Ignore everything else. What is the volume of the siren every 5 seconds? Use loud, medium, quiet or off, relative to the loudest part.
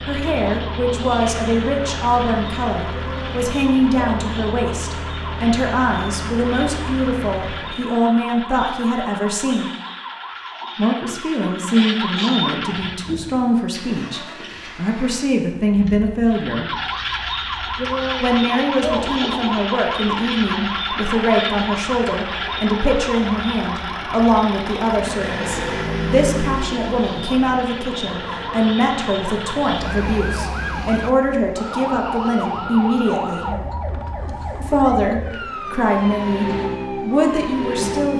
medium, medium, loud, loud, loud, medium, loud, loud.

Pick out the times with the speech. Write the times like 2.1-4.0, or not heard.
0.1-9.7, 10.8-16.7, 18.2-33.5, 34.6-38.1.